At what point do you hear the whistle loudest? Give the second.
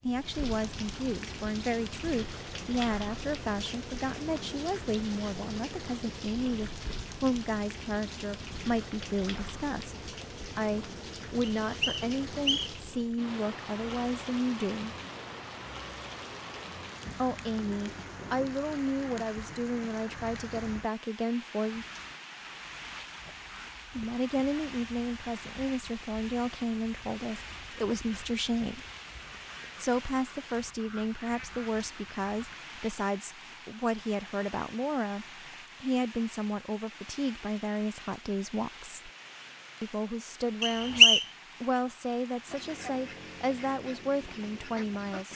41 s.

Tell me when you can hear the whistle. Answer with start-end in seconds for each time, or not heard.
11.6-12.7, 40.6-41.2.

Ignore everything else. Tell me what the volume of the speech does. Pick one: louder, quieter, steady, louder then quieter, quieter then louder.
steady.